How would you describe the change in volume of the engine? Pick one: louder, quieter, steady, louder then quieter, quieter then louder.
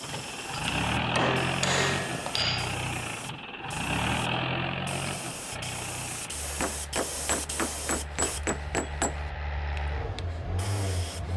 quieter then louder.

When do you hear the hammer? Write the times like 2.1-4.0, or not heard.
0.1-2.8, 6.5-9.2.